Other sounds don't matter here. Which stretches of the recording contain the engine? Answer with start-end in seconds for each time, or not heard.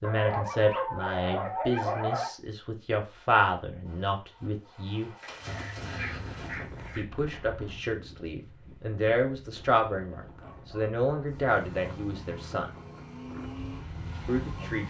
3.9-6.5, 11.4-14.8.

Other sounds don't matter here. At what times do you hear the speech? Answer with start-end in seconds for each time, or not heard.
0.0-5.1, 7.0-12.7, 14.2-14.8.